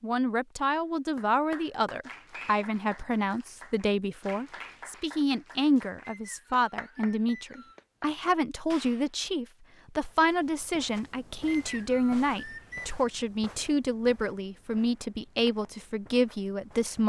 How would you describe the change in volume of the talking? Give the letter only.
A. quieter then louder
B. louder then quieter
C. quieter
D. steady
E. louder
D.